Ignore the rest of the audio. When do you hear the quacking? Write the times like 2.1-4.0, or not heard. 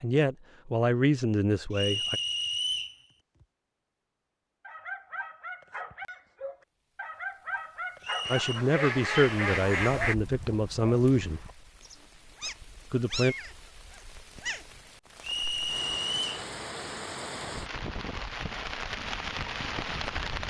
8.2-10.2.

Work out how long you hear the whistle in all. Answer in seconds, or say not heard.
3 s.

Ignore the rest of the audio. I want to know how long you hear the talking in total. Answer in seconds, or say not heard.
6 s.